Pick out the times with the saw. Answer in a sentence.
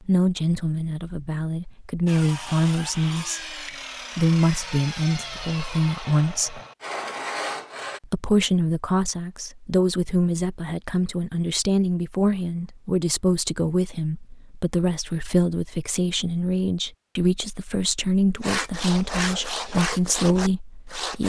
The saw can be heard from 2.0 to 8.0 s and from 18.4 to 21.2 s.